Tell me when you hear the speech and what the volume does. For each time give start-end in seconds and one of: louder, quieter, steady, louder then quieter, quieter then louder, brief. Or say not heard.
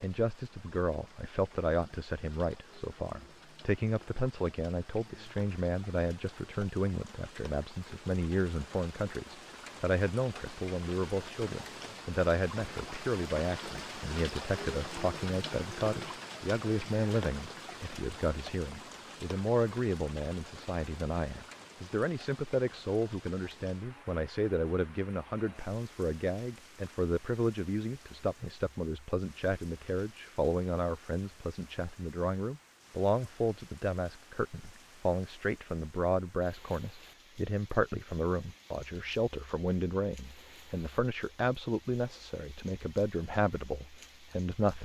0.0-44.7 steady.